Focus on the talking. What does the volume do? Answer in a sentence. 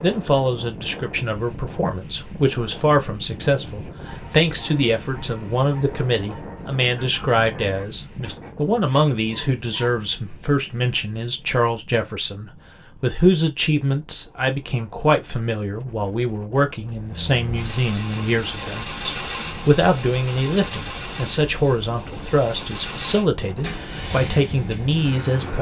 The loudness of the talking stays about the same.